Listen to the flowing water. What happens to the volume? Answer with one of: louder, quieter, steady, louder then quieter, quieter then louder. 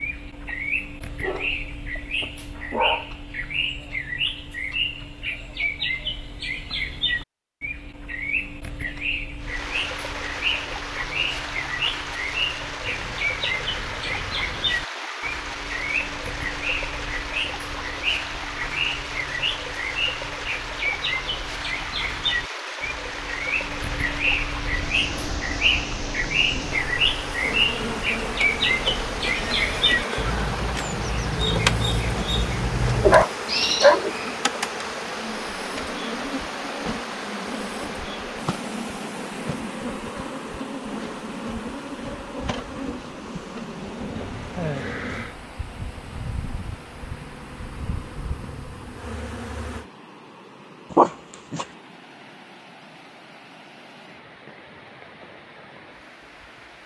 quieter.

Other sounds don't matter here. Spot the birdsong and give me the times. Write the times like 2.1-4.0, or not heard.
0.0-34.4.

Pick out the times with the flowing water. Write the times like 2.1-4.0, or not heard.
9.3-56.8.